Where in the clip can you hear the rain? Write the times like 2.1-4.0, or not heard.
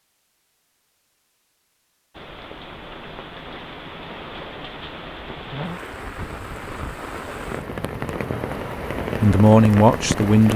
2.1-10.5.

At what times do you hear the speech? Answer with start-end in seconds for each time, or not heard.
9.2-10.5.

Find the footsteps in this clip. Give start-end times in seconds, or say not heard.
not heard.